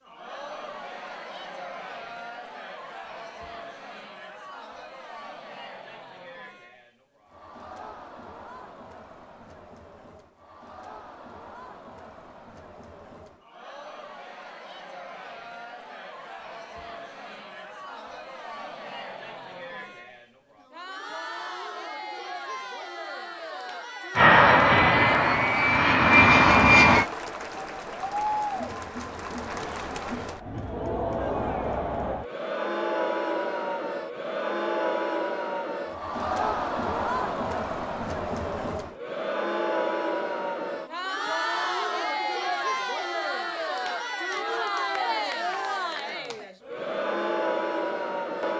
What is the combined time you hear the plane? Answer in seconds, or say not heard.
3 s.